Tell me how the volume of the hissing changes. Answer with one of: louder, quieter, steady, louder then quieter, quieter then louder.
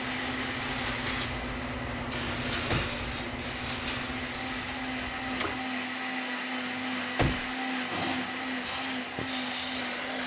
quieter then louder.